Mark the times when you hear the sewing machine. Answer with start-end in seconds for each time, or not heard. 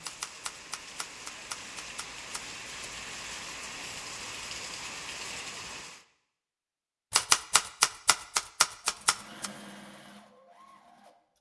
8.8-11.2.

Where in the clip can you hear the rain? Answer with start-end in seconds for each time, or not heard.
0.0-6.0.